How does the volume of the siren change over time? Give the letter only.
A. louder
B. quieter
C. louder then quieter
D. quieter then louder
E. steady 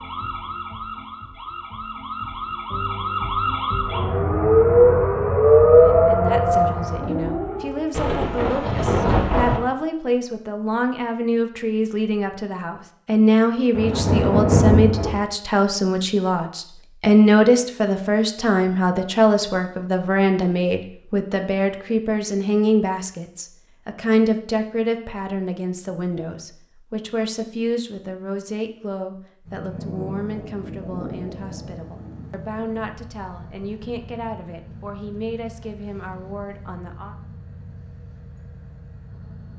C.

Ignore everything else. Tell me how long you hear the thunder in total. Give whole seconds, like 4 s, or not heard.
6 s.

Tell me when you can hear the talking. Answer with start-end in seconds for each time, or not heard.
5.8-37.1.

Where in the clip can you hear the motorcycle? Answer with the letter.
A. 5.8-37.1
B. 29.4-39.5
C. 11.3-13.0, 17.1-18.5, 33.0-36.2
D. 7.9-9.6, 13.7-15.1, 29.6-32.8
B.